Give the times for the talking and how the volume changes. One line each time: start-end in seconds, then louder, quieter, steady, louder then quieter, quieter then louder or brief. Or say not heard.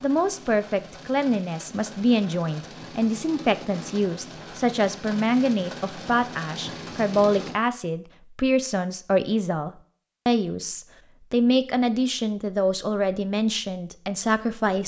0.0-14.8 steady.